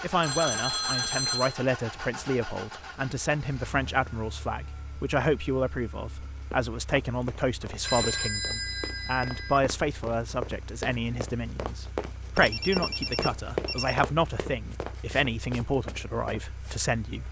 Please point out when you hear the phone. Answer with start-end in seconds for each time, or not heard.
0.2-1.6, 7.8-9.6, 12.3-14.0.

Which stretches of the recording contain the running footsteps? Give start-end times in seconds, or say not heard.
6.2-16.8.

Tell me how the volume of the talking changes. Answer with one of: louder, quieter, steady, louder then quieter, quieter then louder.
steady.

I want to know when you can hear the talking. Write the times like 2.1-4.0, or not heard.
0.0-17.2.